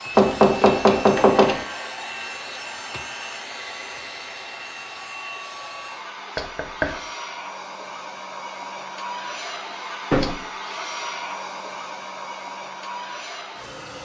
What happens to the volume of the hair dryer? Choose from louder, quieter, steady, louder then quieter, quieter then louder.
steady.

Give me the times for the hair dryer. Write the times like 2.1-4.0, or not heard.
0.0-13.9.